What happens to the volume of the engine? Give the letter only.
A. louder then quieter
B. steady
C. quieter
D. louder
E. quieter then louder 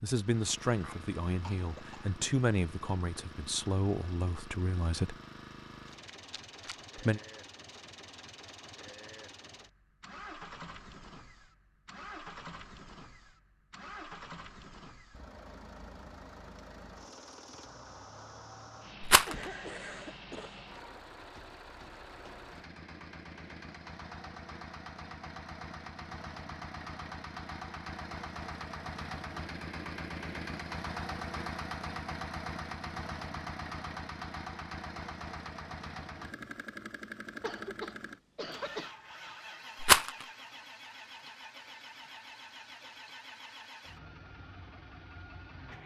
A.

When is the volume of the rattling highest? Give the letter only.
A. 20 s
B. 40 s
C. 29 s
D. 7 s
B.